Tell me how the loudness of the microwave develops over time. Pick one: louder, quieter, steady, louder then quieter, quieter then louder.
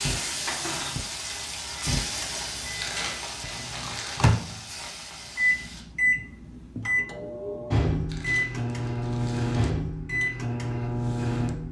louder.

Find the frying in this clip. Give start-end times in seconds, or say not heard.
0.0-5.8.